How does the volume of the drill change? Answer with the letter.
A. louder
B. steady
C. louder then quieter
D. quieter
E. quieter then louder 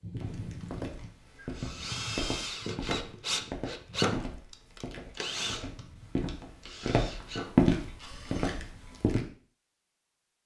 C.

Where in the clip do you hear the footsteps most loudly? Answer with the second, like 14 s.
8 s.